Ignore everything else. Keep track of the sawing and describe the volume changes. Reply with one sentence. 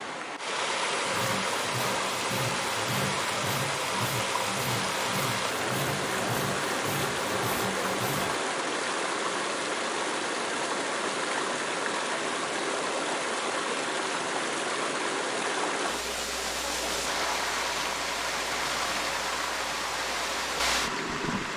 The volume of the sawing stays about the same.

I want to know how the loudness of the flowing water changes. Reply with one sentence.
The loudness of the flowing water stays about the same.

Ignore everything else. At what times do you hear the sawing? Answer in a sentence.
You can hear the sawing from 1.0 to 8.4 s.